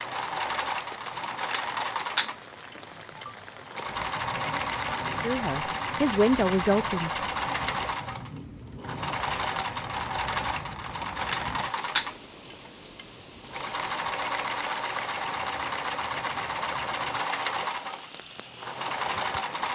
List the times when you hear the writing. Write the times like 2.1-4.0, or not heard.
not heard.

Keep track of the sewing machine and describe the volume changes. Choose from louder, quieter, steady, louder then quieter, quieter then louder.
steady.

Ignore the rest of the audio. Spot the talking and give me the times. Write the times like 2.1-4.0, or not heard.
5.1-7.5.